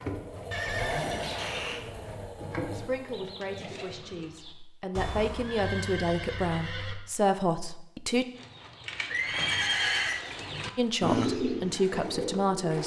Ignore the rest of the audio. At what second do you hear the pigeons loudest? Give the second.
11 s.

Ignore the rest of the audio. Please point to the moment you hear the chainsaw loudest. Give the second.
1 s.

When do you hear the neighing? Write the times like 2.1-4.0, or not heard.
0.5-1.8, 5.0-7.0, 9.1-10.2.